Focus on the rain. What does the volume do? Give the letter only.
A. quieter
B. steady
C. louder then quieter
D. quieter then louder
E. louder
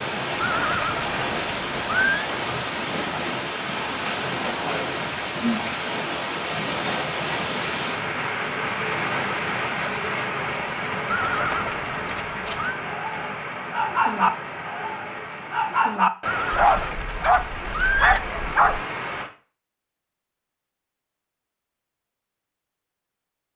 A.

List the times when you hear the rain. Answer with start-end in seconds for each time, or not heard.
0.0-19.3.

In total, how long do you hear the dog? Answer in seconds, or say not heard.
6 s.